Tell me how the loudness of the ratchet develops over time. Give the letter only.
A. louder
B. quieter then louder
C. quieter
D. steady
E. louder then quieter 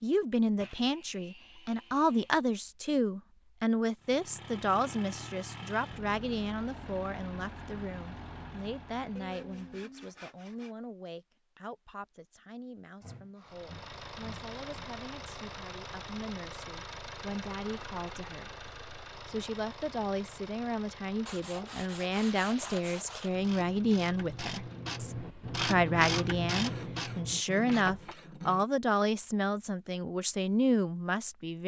E.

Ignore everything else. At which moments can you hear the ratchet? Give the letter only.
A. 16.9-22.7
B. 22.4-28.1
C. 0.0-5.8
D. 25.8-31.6
B.